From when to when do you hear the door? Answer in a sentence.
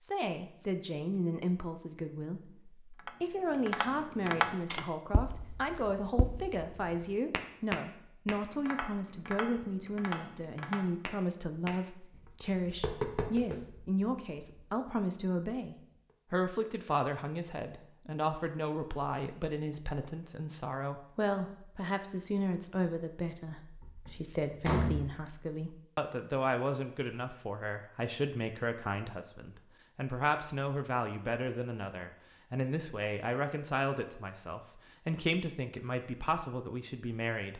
The door can be heard from 23.8 to 25.1 s.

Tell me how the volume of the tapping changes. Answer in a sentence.
The volume of the tapping goes down, then up.